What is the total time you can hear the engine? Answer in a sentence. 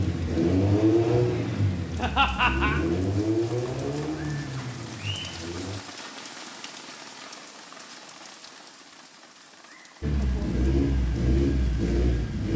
The engine can be heard for 8 seconds in total.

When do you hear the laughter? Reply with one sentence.
You can hear the laughter from 1.9 to 2.8 s.